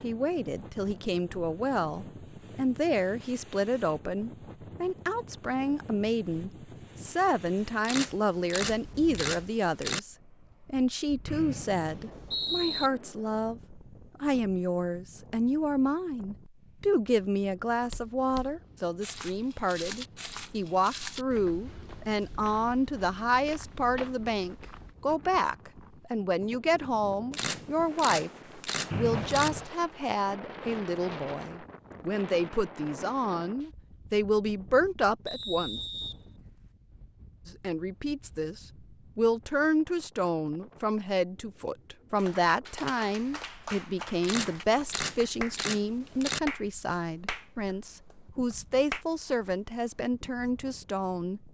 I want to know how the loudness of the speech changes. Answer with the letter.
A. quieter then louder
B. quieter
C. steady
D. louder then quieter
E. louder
C.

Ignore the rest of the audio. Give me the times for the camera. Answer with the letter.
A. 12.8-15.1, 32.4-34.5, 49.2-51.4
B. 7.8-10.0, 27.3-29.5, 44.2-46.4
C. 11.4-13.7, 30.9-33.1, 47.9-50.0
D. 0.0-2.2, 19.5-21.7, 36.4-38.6
B.